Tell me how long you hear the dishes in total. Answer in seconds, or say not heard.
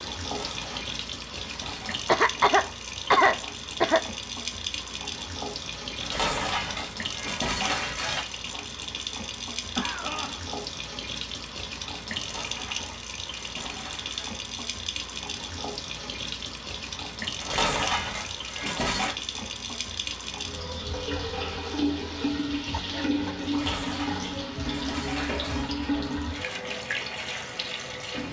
10 s.